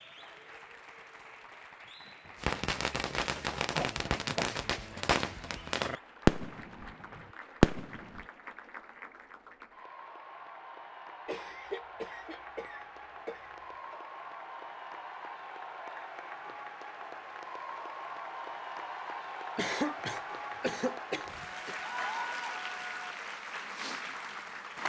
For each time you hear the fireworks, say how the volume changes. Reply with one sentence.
You can hear the fireworks from 2.4 to 8.2 s, getting louder.